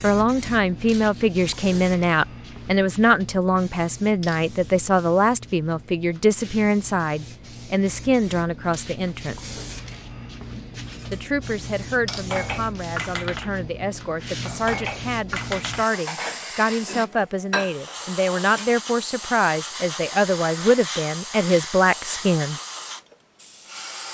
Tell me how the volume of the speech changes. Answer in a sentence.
The volume of the speech goes down, then up.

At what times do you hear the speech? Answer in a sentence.
You can hear the speech from 0.0 to 9.6 s and from 11.1 to 22.6 s.